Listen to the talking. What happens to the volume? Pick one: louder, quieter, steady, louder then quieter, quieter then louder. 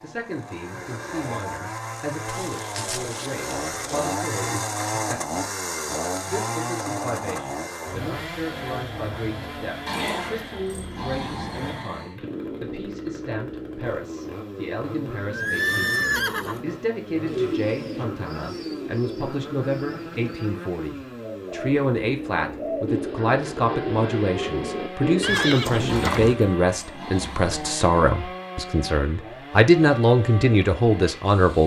louder.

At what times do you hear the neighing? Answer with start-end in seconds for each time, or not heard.
2.2-4.2, 15.3-16.6, 25.2-26.4.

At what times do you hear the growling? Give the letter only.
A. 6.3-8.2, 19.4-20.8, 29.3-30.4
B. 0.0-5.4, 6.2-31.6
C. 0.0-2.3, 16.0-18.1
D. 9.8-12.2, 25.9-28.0
D.